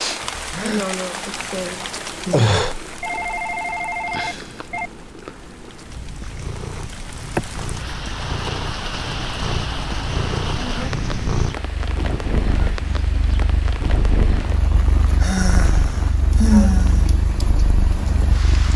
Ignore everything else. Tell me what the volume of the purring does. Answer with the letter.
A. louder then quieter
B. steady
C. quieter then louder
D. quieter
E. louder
E.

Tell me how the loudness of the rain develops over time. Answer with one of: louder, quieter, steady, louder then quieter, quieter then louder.
quieter then louder.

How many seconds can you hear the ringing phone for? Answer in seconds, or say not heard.
2 s.